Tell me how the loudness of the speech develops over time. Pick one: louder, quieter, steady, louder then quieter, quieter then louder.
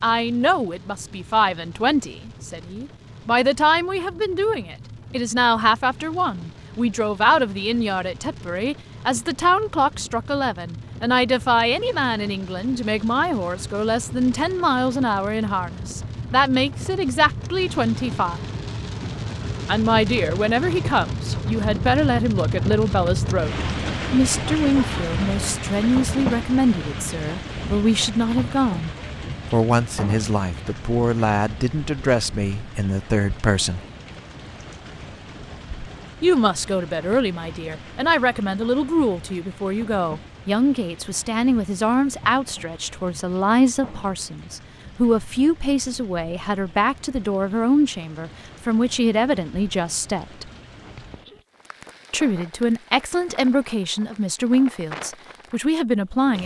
steady.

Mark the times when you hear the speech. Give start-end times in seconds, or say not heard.
0.0-18.4, 19.6-28.9, 29.5-33.9, 36.2-50.5, 52.1-56.4.